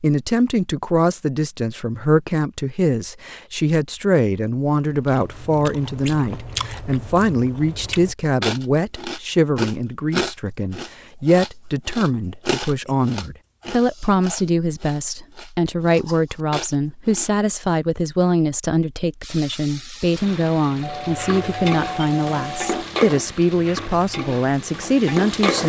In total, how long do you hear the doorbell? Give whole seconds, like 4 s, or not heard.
2 s.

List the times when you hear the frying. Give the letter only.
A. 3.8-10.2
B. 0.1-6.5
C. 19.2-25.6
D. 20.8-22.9
C.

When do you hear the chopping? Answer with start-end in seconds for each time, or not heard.
not heard.